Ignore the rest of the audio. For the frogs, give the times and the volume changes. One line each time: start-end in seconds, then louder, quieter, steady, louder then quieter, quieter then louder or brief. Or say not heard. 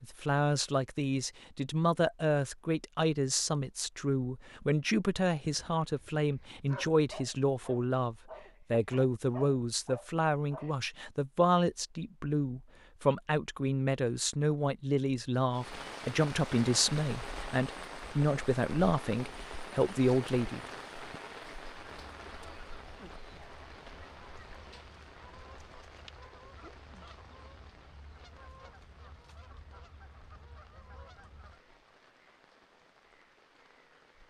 not heard.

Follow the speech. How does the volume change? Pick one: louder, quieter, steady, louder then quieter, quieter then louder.
steady.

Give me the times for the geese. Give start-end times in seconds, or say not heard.
21.7-31.6.